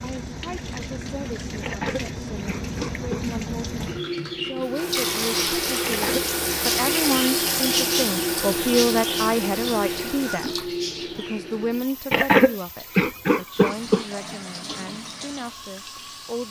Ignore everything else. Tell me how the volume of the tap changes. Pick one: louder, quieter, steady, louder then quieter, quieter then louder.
louder then quieter.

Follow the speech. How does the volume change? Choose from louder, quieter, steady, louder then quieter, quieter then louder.
louder then quieter.